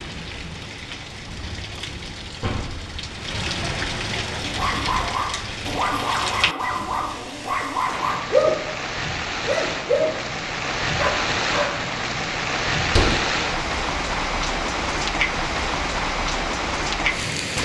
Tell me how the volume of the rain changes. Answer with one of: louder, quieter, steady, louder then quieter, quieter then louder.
louder.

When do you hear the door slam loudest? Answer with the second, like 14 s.
13 s.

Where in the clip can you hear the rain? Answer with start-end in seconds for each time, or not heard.
0.0-17.6.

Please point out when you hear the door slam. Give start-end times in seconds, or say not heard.
2.4-3.0, 12.8-13.2.